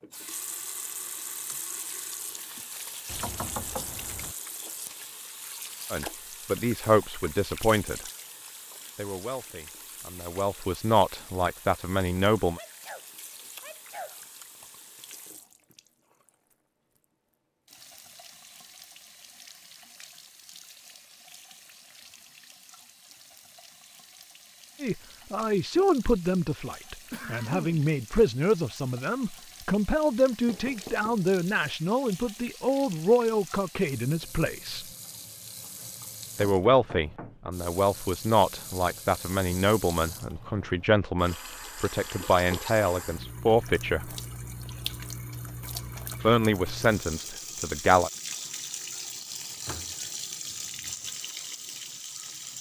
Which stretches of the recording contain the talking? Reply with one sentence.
You can hear the talking from 5.9 to 8.1 s, from 8.9 to 12.6 s, from 24.8 to 34.9 s, from 36.4 to 44.1 s and from 46.2 to 48.1 s.